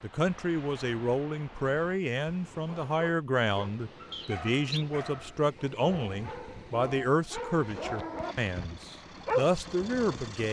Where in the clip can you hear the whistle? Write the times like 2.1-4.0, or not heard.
4.1-4.8.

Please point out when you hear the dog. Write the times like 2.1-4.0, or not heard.
2.6-10.2.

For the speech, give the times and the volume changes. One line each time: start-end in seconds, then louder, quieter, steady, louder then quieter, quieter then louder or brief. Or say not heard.
0.0-10.4 steady.